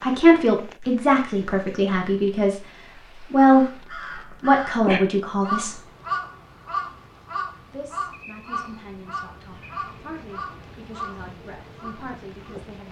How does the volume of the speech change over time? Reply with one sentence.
The volume of the speech goes down.